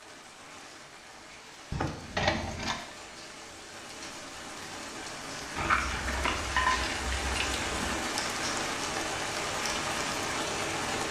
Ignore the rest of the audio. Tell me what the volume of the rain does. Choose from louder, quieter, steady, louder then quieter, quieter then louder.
louder.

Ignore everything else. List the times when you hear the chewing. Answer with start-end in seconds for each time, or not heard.
not heard.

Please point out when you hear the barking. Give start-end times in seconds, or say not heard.
not heard.